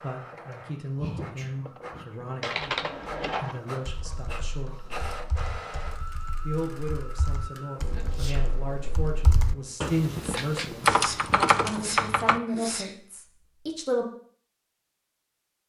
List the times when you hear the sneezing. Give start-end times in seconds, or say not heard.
0.9-2.1, 7.9-8.5, 10.9-12.9.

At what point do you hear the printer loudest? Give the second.
5 s.